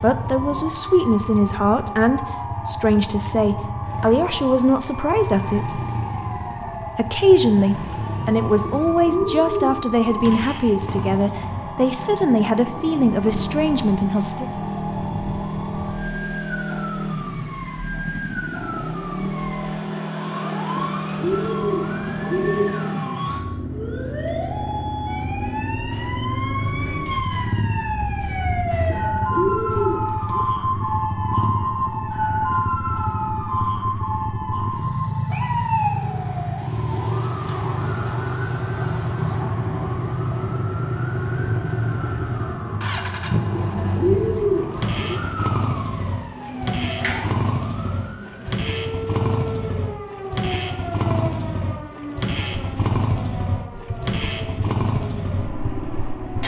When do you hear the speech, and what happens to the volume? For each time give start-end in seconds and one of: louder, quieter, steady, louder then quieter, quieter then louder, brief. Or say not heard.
0.0-5.8 steady
7.0-14.5 steady.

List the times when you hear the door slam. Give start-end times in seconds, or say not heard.
not heard.